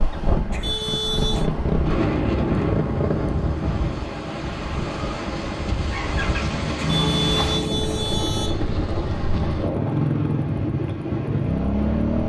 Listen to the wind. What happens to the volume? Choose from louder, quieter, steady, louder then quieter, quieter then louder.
steady.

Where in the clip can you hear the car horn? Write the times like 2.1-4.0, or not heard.
0.5-1.5, 6.8-8.6.